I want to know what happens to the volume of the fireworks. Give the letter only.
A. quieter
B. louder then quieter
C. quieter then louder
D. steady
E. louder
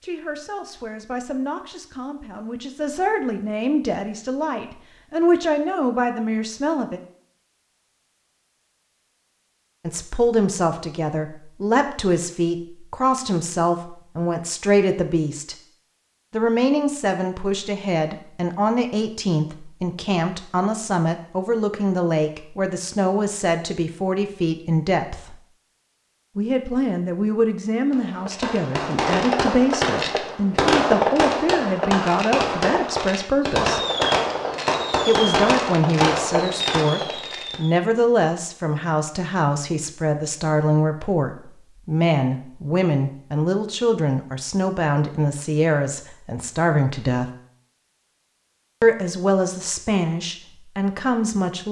D.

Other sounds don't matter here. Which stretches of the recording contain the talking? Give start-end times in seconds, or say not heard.
0.0-7.0, 9.8-15.6, 16.3-25.4, 26.4-33.8, 35.0-47.3, 48.8-51.6.